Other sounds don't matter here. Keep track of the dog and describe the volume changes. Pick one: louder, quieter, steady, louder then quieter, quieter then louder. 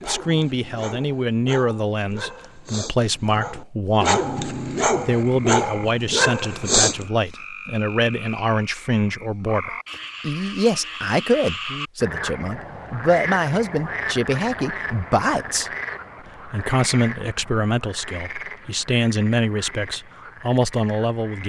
louder.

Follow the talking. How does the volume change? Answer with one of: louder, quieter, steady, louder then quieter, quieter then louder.
steady.